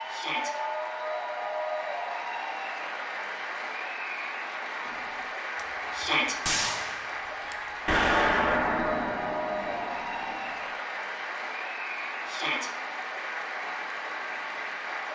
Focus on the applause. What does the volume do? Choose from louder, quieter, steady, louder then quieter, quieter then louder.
steady.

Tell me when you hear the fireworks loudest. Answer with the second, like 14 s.
8 s.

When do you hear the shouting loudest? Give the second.
6 s.